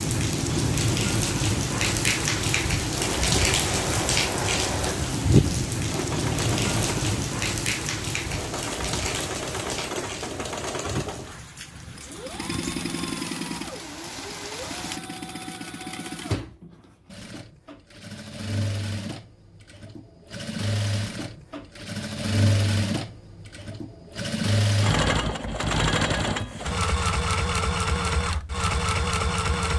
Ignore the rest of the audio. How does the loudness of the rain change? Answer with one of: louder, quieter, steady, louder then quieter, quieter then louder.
quieter.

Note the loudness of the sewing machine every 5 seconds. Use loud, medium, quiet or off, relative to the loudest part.
medium, medium, medium, medium, loud, loud.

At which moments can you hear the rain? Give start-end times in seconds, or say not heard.
0.0-15.0.